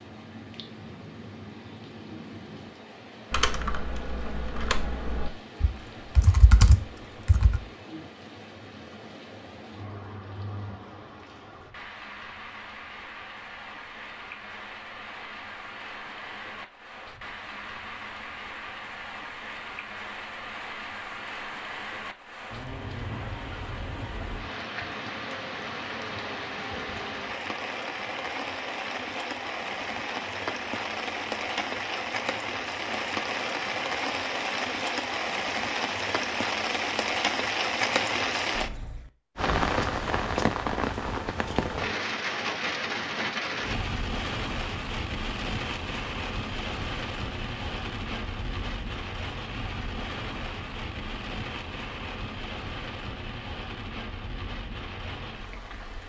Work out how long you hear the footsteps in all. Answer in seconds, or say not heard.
not heard.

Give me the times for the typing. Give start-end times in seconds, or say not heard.
3.3-7.6.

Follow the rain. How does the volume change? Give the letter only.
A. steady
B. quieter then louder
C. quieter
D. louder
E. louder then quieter
E.